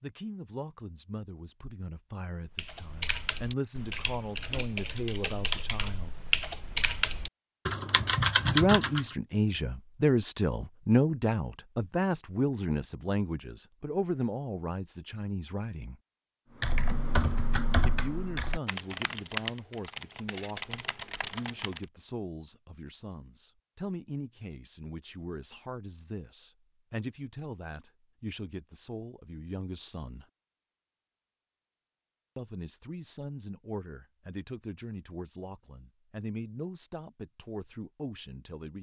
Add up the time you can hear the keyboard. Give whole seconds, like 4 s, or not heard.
12 s.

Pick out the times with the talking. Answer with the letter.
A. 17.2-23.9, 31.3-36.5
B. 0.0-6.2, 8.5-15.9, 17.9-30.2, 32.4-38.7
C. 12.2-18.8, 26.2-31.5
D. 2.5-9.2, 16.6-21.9
B.